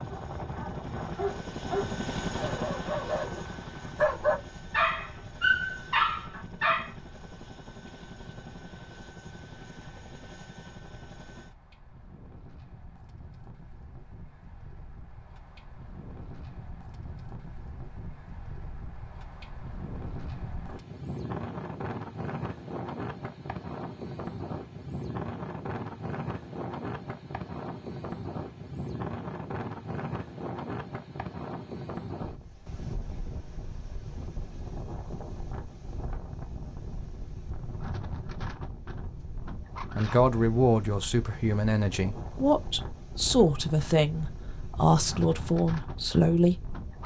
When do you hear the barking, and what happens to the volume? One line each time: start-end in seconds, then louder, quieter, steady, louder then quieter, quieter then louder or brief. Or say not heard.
0.1-6.9 louder.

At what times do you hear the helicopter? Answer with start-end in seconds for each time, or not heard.
0.0-11.6.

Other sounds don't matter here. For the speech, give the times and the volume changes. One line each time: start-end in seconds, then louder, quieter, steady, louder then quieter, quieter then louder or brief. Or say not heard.
40.0-47.0 steady.